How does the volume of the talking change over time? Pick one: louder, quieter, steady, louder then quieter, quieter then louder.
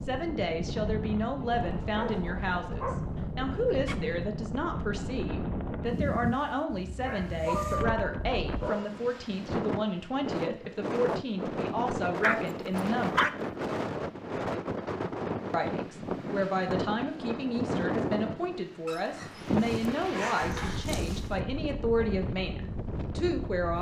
steady.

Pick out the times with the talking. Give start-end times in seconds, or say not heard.
0.1-13.3, 15.5-23.7.